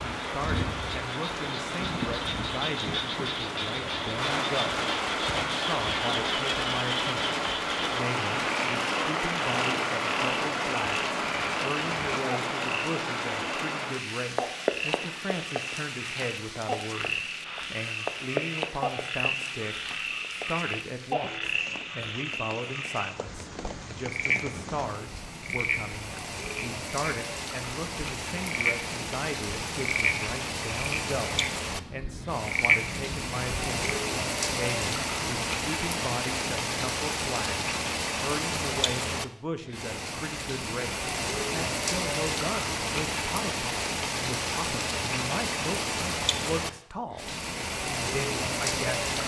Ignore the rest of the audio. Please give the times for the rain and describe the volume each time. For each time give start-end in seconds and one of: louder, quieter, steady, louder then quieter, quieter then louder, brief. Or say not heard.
0.0-49.2 quieter then louder.